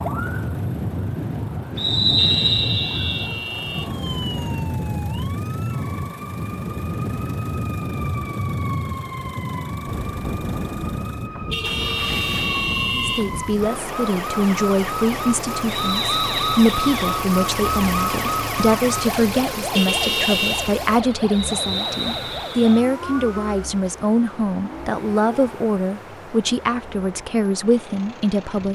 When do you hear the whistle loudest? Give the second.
2 s.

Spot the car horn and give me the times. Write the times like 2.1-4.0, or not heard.
2.1-4.0, 11.5-13.3, 19.7-20.8.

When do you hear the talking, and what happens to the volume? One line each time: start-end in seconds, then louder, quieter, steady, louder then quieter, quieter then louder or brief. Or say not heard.
12.9-28.7 steady.